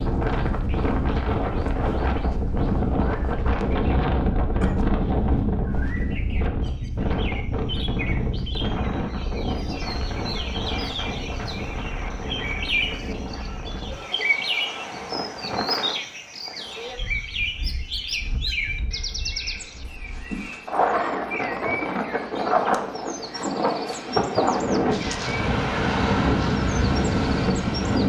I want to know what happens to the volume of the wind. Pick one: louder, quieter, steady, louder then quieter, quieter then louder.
quieter then louder.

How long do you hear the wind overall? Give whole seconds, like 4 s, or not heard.
28 s.